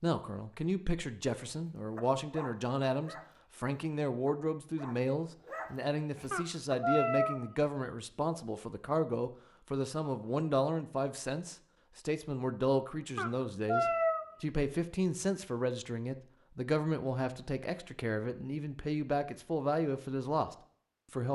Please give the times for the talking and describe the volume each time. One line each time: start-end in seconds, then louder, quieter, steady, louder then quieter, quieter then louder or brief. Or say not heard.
0.0-21.2 steady.